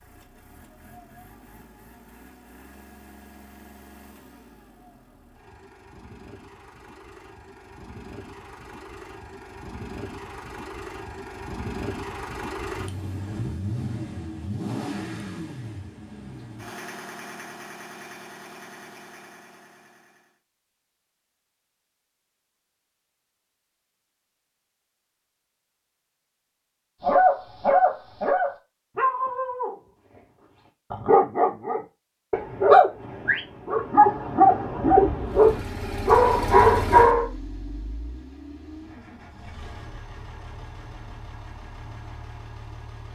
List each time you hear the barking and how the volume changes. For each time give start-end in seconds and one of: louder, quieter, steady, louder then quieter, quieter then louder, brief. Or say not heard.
27.0-29.8 brief
30.9-37.2 louder.